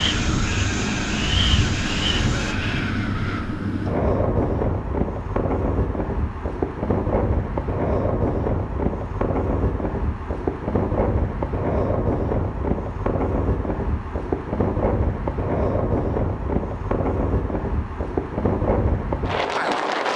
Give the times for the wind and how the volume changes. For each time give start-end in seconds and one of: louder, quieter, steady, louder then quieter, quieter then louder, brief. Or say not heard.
0.0-20.1 steady.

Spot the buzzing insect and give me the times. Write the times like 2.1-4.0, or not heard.
0.0-2.5.